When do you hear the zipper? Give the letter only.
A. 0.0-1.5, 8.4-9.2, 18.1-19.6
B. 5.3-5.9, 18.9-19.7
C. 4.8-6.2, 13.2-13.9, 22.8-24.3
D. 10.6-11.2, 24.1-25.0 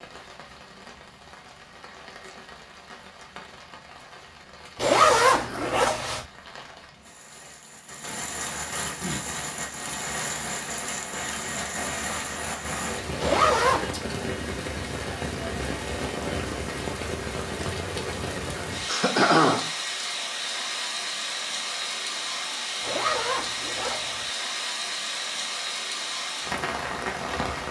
C.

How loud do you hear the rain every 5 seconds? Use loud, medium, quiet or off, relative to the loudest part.
quiet, medium, loud, loud, loud, loud.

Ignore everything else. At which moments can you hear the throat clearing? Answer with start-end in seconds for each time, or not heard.
5.3-5.9, 18.9-19.7.